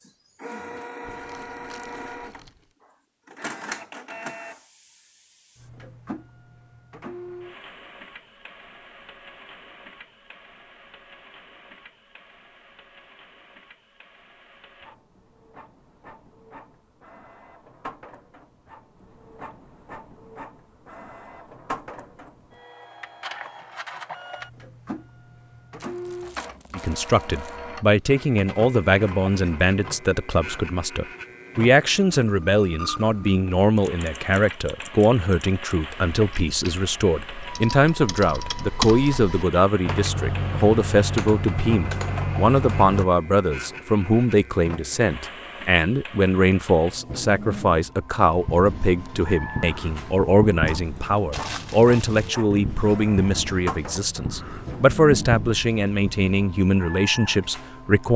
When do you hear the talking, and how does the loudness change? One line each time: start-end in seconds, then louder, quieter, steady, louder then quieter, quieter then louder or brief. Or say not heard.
26.8-58.1 steady.